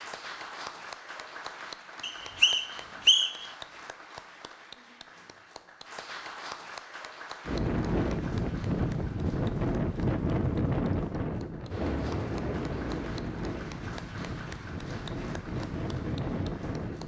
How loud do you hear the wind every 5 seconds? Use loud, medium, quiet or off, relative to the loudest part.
off, loud, loud, medium.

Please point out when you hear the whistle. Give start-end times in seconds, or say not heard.
2.0-3.5.